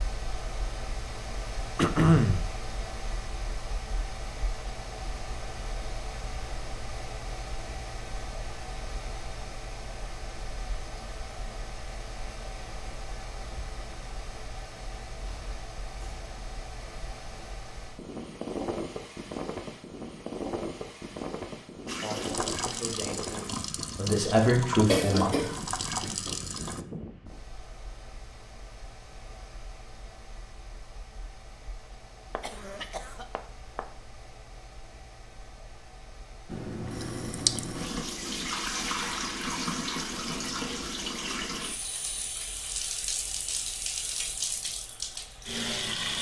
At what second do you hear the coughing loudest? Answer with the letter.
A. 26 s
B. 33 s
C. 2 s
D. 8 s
C.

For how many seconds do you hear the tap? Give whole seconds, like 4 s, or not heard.
15 s.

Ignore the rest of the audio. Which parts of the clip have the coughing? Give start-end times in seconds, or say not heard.
1.8-2.5, 24.9-25.6, 32.4-33.8.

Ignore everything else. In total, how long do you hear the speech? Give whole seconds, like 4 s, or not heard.
4 s.